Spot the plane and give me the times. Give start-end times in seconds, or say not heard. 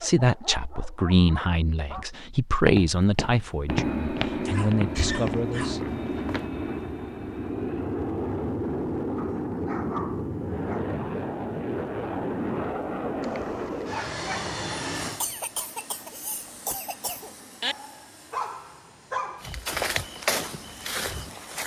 3.6-21.6.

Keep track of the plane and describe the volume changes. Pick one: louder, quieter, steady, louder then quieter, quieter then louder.
quieter.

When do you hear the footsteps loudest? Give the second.
20 s.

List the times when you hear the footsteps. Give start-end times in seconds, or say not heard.
2.5-6.5, 19.4-21.6.